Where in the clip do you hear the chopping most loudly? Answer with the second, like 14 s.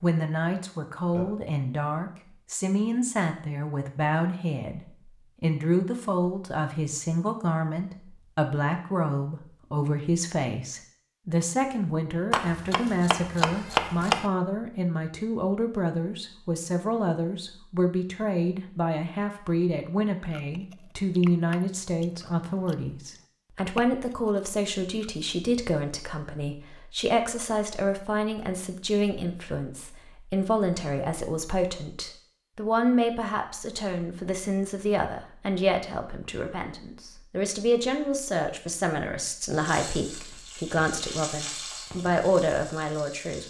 14 s.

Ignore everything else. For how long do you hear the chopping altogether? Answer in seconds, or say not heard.
2 s.